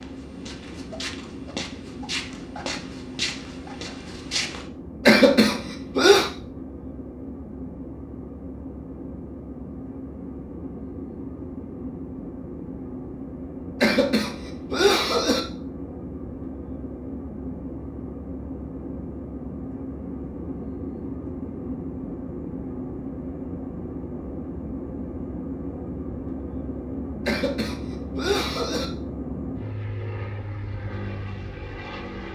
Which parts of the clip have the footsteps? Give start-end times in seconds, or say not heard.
0.0-4.7.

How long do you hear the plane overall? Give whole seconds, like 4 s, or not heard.
32 s.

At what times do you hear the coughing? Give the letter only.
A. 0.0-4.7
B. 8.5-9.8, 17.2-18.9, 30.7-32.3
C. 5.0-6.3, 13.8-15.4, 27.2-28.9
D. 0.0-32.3
C.